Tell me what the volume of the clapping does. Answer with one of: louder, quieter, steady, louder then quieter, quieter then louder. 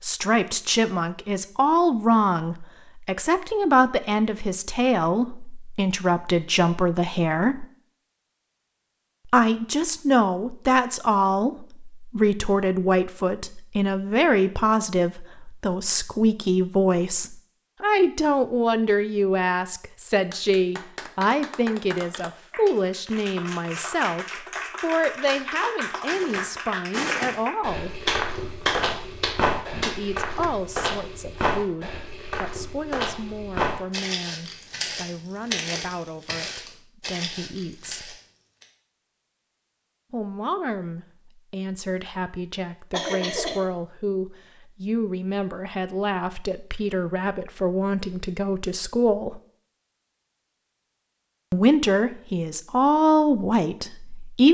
louder.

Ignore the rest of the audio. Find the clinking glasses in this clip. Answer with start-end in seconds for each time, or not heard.
not heard.